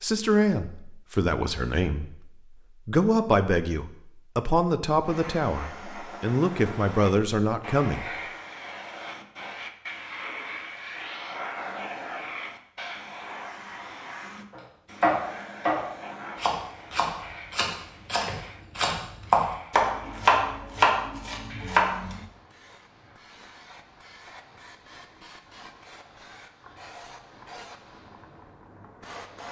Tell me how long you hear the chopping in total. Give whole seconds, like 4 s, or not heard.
8 s.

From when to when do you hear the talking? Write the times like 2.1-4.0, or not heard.
0.0-8.1.